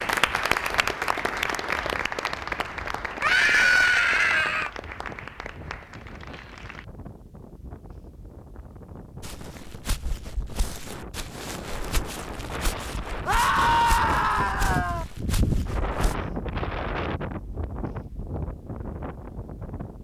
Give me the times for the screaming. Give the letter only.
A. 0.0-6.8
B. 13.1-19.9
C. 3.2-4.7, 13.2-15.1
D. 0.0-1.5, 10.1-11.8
C.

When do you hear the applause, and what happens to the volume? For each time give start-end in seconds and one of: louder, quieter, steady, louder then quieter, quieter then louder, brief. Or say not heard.
0.0-6.8 quieter.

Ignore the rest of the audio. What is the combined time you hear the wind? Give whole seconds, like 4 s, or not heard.
20 s.